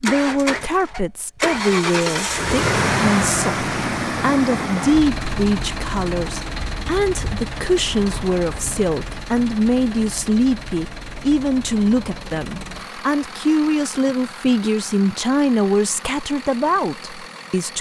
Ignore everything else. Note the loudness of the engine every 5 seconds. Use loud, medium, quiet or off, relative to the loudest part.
loud, medium, quiet, quiet.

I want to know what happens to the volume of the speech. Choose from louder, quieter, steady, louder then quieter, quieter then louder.
steady.